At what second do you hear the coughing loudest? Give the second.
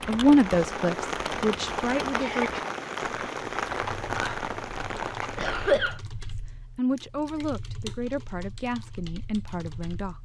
6 s.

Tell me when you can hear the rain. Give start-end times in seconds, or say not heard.
0.0-5.8.